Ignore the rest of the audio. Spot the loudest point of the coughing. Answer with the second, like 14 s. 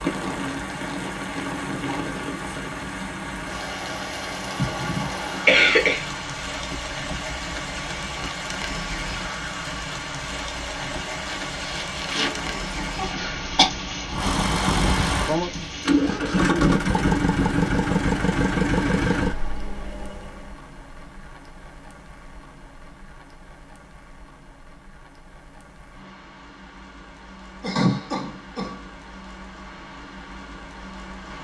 6 s.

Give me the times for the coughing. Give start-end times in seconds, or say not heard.
4.5-6.0, 10.9-13.7, 27.6-28.8.